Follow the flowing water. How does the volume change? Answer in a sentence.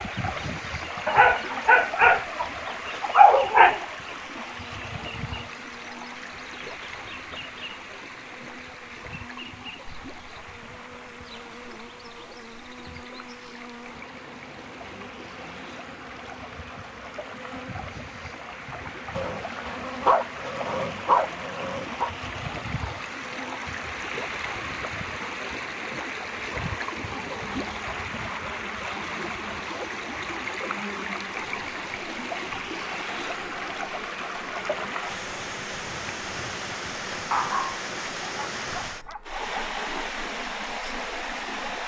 The volume of the flowing water goes down, then up.